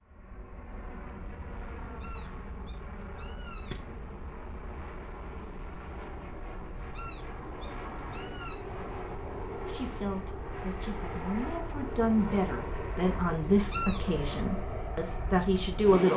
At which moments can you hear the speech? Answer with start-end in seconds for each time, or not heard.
9.7-16.1.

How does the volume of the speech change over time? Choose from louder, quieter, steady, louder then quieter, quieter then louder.
louder.